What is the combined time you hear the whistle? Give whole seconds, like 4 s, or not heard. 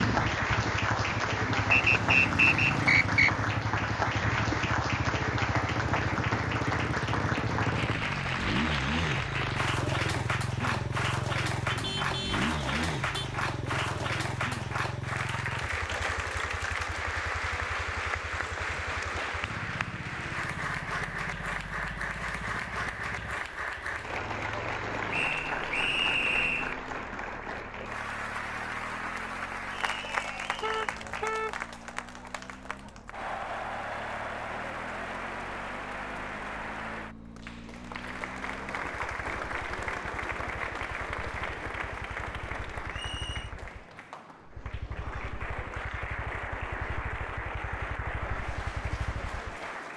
4 s.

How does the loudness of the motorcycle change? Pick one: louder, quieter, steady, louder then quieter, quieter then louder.
quieter.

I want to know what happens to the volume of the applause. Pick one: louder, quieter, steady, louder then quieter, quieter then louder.
quieter.